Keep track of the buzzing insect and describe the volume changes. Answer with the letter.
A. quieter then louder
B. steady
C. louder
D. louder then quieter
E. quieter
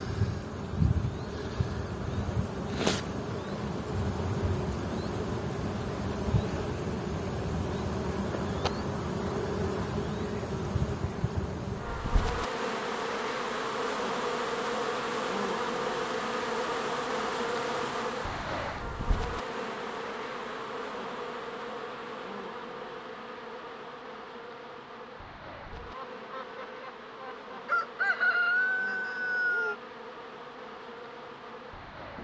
E.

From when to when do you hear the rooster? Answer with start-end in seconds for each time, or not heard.
25.9-29.8.